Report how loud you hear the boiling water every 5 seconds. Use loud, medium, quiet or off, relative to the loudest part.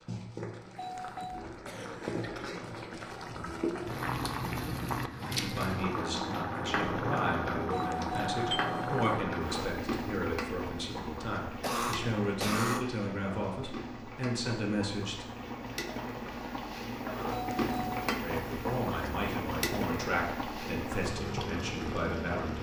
loud, loud, medium, loud, loud.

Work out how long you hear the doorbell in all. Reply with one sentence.
The doorbell can be heard for 3 seconds in total.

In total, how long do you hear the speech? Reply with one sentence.
You can hear the speech for 14 seconds altogether.